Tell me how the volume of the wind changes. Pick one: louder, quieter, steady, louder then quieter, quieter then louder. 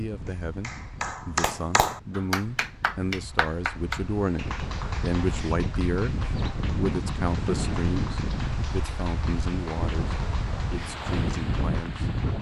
louder.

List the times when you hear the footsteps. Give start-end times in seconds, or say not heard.
not heard.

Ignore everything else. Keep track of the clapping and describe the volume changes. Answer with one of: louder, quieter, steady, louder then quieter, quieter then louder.
quieter.